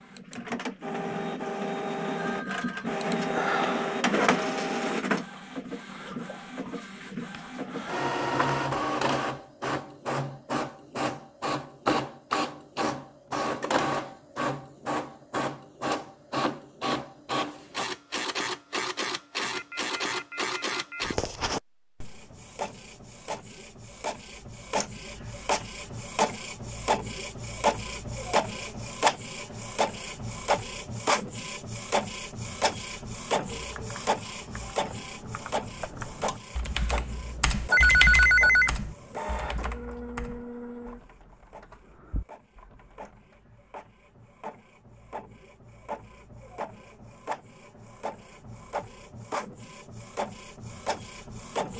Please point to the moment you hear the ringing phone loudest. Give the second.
38 s.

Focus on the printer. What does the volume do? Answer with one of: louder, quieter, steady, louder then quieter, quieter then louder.
quieter.